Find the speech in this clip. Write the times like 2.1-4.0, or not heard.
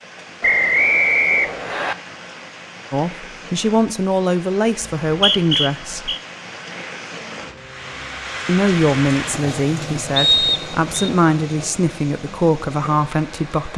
2.9-6.2, 8.4-13.7.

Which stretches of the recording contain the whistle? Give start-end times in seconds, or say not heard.
0.4-1.9, 5.0-6.2, 10.2-11.1.